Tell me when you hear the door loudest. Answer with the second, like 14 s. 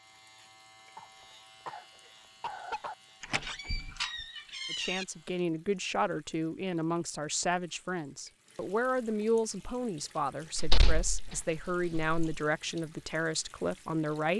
11 s.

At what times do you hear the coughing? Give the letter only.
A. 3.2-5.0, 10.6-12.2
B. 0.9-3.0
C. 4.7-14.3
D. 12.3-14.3
B.